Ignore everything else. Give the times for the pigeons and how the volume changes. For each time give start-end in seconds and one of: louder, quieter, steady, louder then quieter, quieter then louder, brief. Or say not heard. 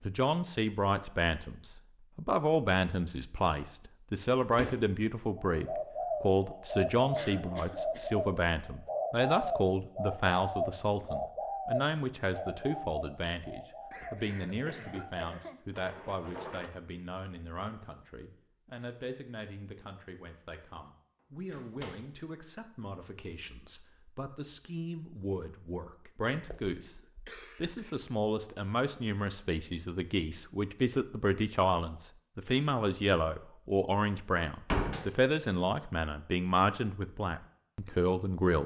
5.3-16.7 quieter.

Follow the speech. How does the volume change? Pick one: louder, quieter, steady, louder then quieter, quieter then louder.
quieter then louder.